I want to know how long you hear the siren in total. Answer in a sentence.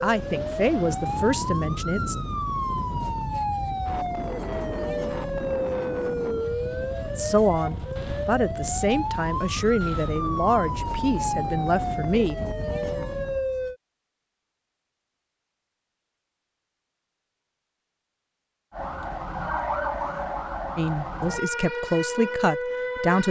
You can hear the siren for 18 seconds altogether.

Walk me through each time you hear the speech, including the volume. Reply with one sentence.
You can hear the speech briefly from 0.0 to 2.1 s; from 7.2 to 12.3 s, at a steady volume; and briefly from 20.8 to 23.2 s.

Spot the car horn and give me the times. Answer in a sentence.
The car horn can't be heard in this clip.